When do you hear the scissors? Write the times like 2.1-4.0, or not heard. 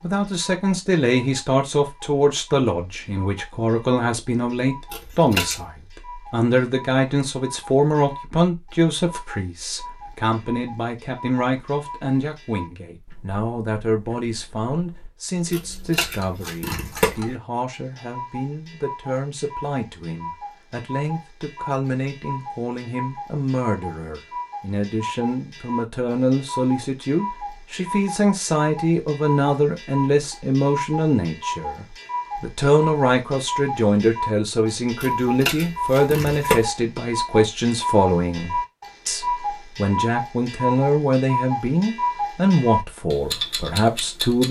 4.9-5.7, 15.5-17.1, 35.0-36.6.